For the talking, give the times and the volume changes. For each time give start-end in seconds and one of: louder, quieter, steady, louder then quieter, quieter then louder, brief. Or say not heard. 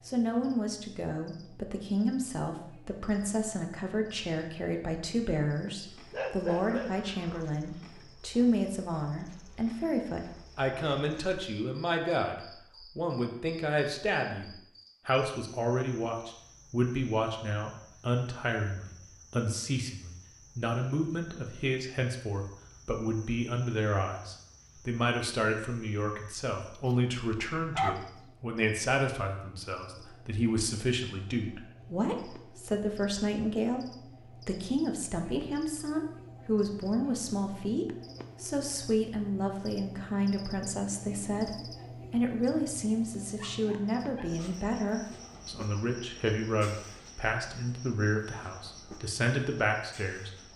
0.1-41.5 steady
42.1-50.3 steady.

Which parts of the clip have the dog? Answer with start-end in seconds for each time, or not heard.
6.1-7.3, 26.9-27.9, 43.4-44.3.